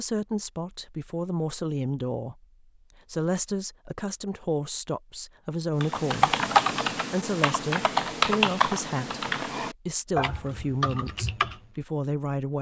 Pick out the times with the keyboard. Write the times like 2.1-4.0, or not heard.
5.8-11.6.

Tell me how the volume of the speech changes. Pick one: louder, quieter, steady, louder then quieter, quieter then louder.
steady.